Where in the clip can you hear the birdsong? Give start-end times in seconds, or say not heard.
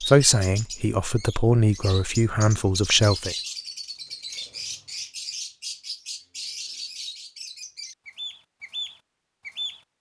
0.0-9.8.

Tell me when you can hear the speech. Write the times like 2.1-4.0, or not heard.
0.0-3.4.